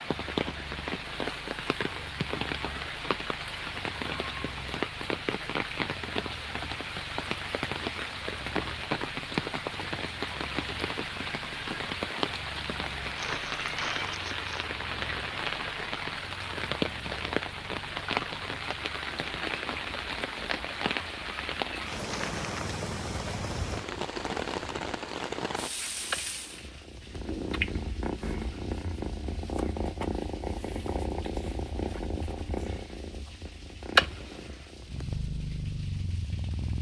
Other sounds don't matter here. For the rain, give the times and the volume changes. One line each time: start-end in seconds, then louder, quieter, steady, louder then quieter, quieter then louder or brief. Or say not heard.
0.0-36.7 quieter.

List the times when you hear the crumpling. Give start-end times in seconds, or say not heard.
13.0-14.7, 21.9-22.8.